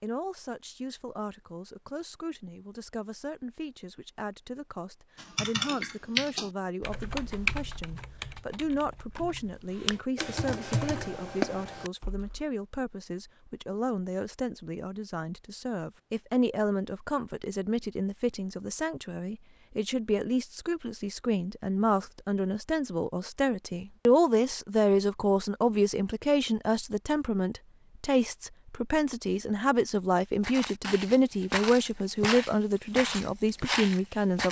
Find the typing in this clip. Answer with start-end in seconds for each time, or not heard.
5.2-12.4.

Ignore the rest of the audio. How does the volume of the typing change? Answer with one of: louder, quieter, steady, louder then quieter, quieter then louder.
quieter then louder.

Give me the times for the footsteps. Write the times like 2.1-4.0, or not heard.
30.4-34.4.